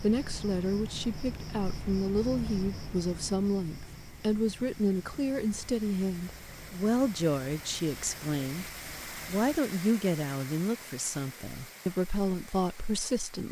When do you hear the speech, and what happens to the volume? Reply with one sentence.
The speech can be heard from 0.0 to 13.4 s, at a steady volume.